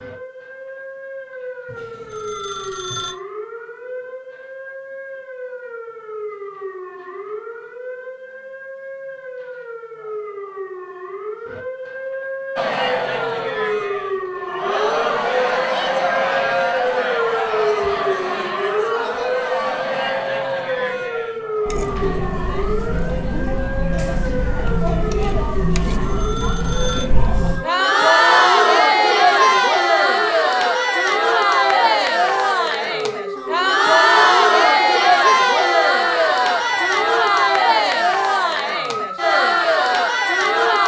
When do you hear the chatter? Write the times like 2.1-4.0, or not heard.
12.6-40.8.